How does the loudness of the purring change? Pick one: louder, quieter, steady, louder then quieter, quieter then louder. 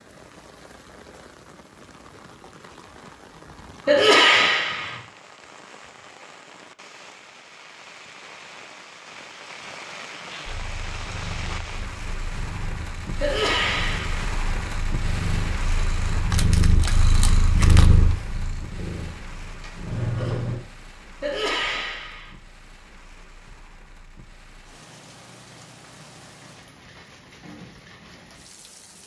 louder then quieter.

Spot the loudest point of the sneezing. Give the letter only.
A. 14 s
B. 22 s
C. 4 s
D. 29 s
C.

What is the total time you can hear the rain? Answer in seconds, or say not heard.
29 s.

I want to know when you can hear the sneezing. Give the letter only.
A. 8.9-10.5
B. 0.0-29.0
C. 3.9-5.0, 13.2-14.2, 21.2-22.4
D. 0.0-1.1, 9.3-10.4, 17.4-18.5
C.